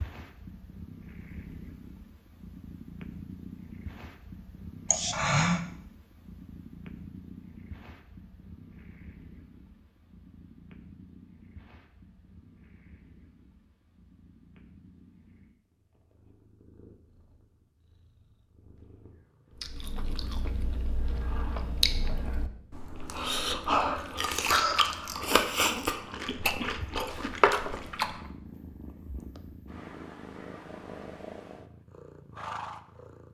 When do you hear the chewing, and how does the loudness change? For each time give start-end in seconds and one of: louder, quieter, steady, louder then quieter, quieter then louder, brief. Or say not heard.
19.6-28.2 louder.